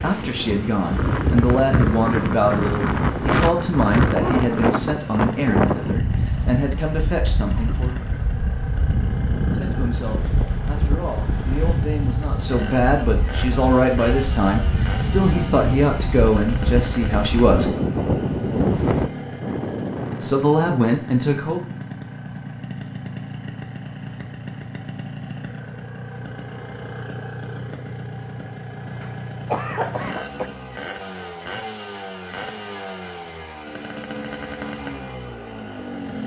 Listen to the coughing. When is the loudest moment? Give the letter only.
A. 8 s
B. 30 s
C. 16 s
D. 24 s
B.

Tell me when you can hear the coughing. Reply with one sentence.
The coughing can be heard from 7.5 to 8.1 s and from 29.0 to 30.5 s.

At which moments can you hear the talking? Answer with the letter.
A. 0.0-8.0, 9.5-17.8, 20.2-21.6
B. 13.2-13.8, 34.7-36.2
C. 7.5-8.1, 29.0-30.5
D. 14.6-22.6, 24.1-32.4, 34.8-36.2
A.